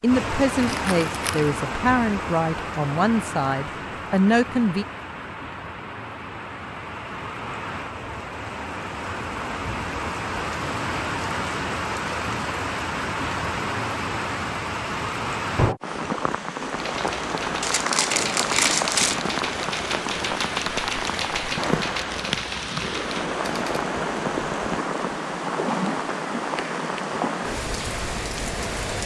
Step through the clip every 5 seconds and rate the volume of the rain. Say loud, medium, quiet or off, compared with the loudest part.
loud, medium, loud, loud, loud, loud.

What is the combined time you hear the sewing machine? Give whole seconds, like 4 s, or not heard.
not heard.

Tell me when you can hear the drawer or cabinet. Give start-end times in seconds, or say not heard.
not heard.